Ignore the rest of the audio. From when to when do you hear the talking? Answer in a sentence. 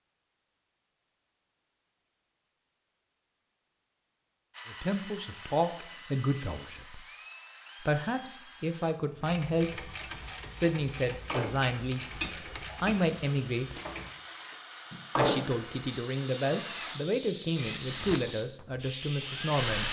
The talking can be heard from 4.7 to 7.0 s, from 7.8 to 13.8 s and from 15.2 to 19.8 s.